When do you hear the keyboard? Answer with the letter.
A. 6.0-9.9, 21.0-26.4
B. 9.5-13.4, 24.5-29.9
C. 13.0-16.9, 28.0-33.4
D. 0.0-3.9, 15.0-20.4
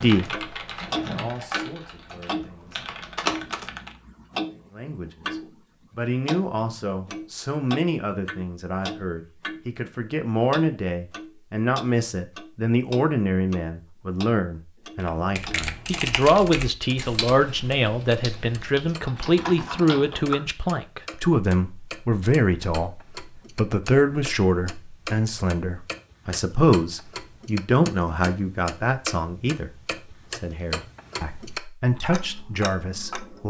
D.